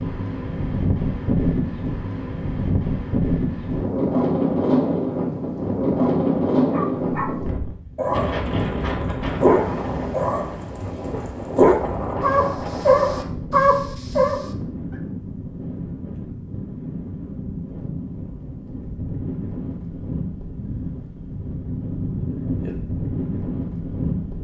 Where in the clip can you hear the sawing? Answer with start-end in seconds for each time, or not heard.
not heard.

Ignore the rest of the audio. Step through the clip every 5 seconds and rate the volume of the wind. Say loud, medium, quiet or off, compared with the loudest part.
loud, loud, medium, medium, medium.